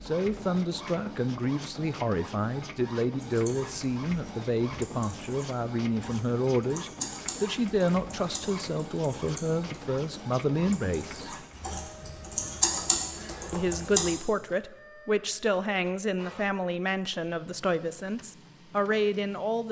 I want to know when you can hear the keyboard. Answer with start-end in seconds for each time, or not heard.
3.2-14.2.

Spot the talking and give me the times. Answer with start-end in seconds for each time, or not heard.
0.0-11.3, 13.5-19.6.